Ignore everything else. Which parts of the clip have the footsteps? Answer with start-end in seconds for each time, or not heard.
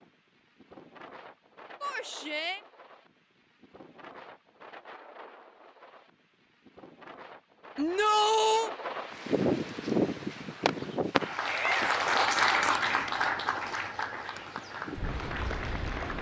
not heard.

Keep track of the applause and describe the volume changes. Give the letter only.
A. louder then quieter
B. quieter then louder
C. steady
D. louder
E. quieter
A.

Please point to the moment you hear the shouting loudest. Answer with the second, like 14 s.
8 s.